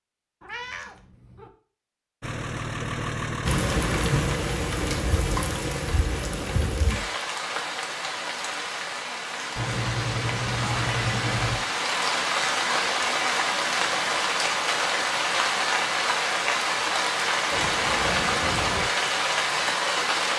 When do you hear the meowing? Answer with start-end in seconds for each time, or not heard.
0.4-1.5, 9.6-11.6, 17.5-18.9.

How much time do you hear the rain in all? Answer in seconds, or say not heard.
17 s.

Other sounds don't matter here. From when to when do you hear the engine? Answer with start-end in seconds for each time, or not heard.
2.2-4.4.